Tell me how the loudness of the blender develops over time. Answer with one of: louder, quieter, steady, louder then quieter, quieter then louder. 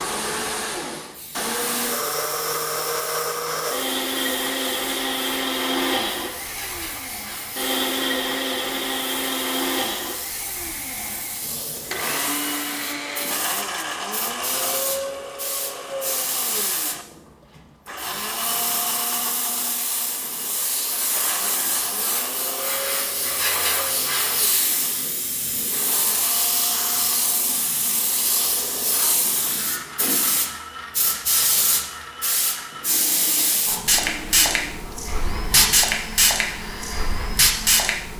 quieter.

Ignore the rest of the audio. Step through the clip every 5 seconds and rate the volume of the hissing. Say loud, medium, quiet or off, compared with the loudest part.
quiet, quiet, quiet, medium, medium, medium, loud, loud.